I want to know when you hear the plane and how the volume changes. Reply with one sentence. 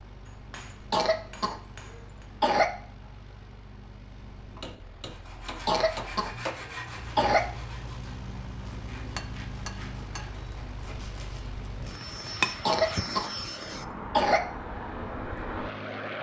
You can hear the plane from 0.0 to 16.1 s, getting louder.